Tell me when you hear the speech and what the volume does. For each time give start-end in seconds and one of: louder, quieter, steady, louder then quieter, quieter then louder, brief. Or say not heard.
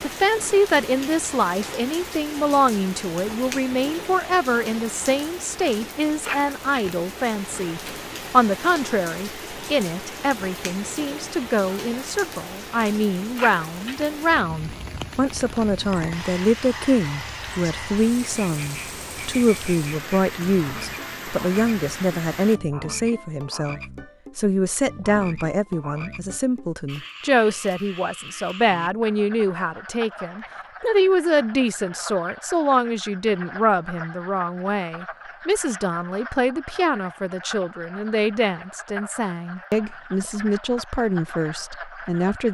0.0-42.4 steady.